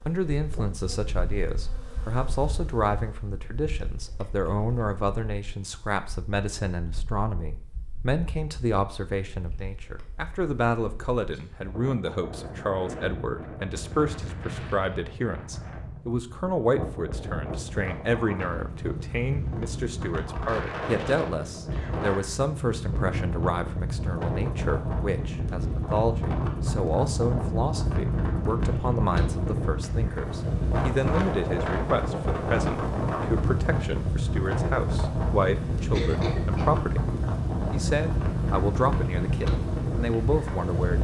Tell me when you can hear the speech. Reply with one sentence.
You can hear the speech from 0.1 to 37.0 s and from 37.7 to 40.9 s.